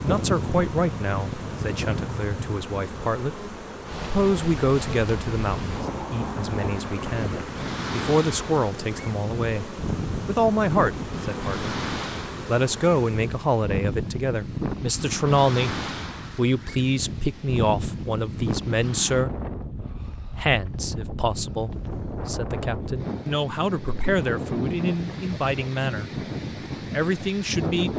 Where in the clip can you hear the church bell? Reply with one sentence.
You can't hear the church bell here.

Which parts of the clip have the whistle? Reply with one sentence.
You can't hear the whistle here.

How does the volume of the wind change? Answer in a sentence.
The loudness of the wind stays about the same.